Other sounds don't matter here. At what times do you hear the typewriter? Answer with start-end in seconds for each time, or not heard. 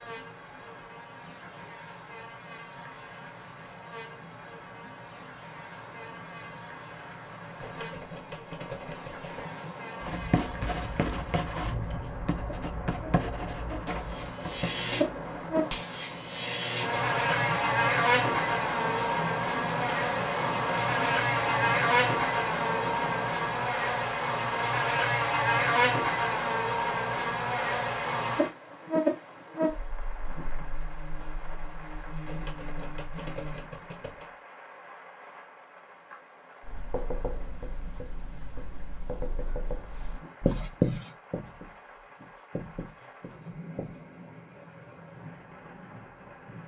7.5-9.5, 32.2-34.4.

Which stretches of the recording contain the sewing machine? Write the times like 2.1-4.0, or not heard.
not heard.